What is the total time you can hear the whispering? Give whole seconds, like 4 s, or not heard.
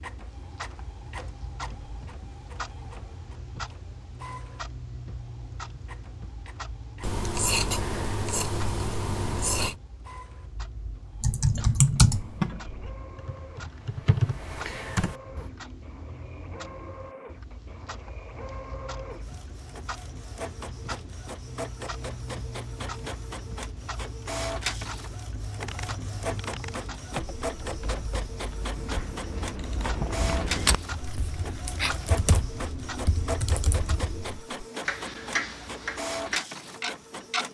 not heard.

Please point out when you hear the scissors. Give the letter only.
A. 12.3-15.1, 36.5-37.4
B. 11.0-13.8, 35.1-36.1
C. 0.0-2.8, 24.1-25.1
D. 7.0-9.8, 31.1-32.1
D.